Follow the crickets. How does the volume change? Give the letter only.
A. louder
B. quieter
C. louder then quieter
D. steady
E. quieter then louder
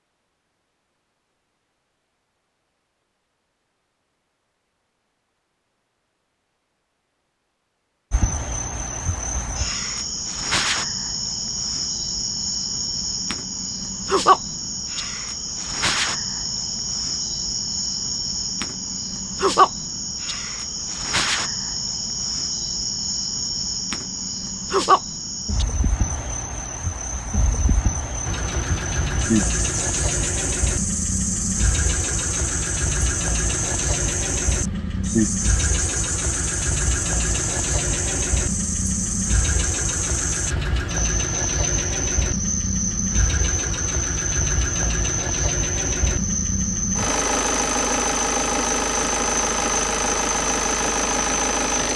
D.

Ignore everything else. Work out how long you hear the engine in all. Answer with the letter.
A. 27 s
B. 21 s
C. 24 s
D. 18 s
C.